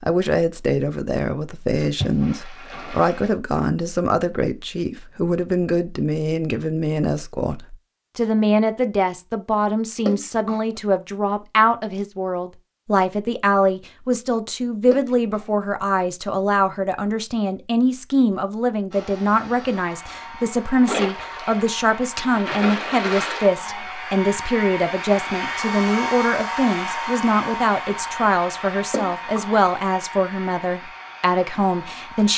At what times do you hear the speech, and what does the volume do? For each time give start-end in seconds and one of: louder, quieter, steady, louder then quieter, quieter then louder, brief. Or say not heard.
0.0-32.3 steady.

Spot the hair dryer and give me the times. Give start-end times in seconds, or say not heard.
18.9-32.3.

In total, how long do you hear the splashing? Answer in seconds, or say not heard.
6 s.